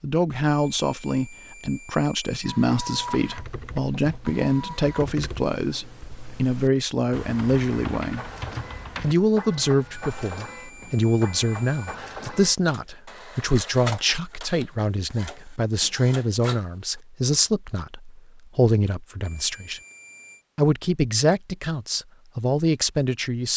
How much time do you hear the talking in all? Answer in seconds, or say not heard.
22 s.